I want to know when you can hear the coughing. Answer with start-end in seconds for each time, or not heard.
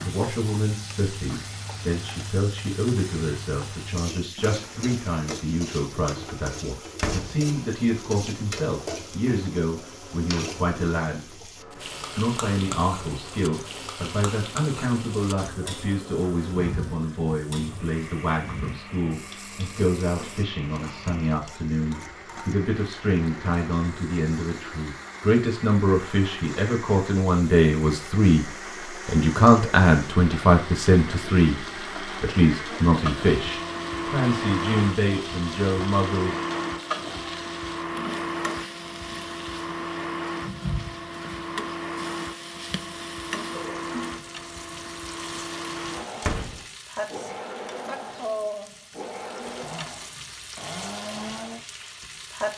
not heard.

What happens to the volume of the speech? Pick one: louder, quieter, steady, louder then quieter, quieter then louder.
louder.